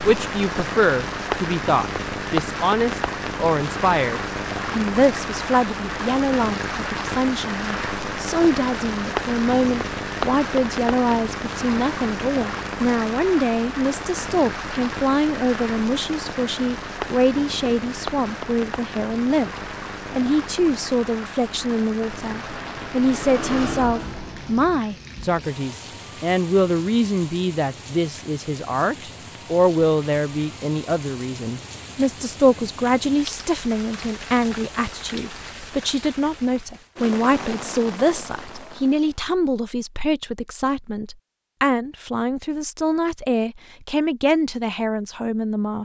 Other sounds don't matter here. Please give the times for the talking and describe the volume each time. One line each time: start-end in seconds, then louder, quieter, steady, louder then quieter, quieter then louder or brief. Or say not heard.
0.0-19.5 steady
20.1-45.8 steady.